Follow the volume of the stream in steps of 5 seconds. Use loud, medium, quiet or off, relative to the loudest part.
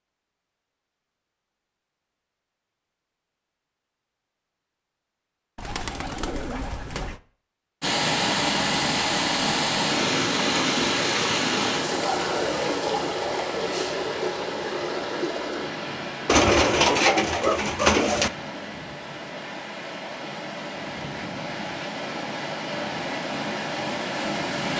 off, loud, loud, medium, medium.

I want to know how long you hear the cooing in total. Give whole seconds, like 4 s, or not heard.
4 s.